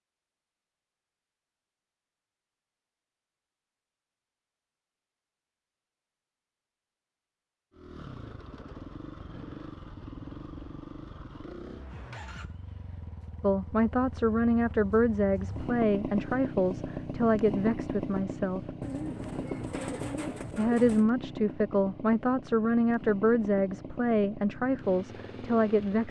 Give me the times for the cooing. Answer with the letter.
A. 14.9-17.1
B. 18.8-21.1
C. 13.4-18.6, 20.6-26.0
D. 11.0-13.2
B.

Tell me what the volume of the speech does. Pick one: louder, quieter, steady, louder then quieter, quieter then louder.
steady.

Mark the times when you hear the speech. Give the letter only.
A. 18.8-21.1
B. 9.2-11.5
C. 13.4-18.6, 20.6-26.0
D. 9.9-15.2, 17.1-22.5
C.